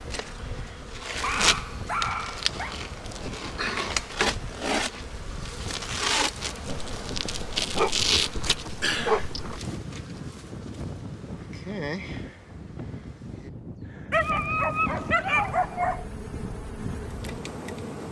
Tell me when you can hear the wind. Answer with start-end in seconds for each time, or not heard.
0.0-18.0.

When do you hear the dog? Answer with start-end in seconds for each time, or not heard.
1.2-2.8, 6.7-9.6, 14.1-16.1.